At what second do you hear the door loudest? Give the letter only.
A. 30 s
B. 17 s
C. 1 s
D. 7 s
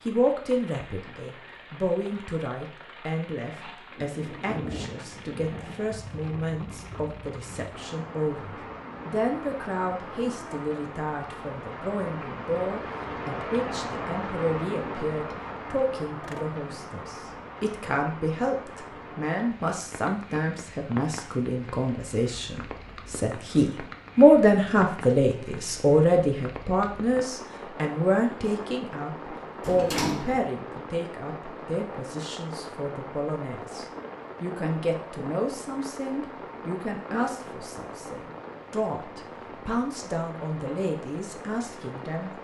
A.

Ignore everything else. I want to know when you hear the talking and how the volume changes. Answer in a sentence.
You can hear the talking from 0.1 to 42.3 s, getting louder then quieter.